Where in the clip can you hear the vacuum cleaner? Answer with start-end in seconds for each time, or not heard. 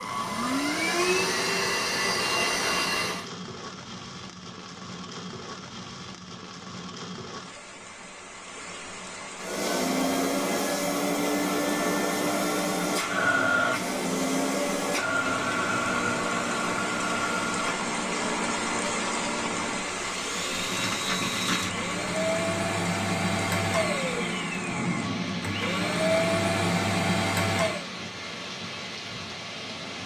0.0-3.2, 9.4-27.9.